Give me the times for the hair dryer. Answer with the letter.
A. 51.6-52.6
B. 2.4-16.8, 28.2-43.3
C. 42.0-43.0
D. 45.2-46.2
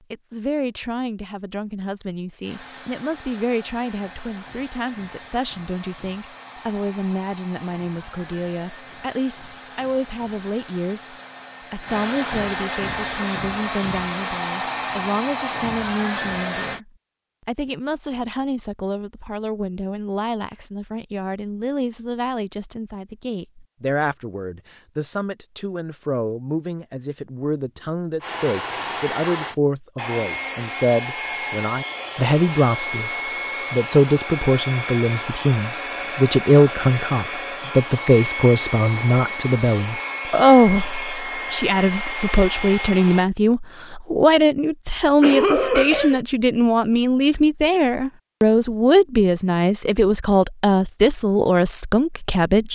B.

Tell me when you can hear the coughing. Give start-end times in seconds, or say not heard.
45.2-46.2.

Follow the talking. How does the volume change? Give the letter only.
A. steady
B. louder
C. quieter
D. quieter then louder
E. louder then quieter
B.